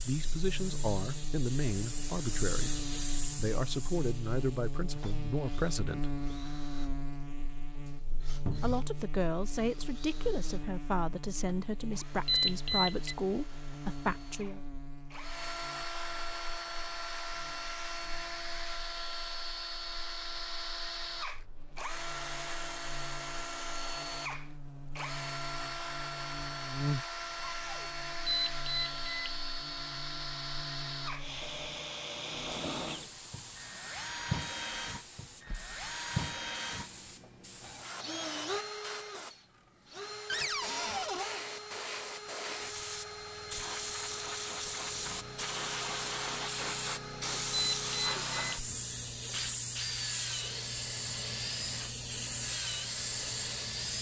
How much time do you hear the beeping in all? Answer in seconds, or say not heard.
3 s.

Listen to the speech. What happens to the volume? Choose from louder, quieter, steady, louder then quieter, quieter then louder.
steady.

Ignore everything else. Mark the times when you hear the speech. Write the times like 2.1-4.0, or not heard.
0.1-6.1, 8.6-14.6.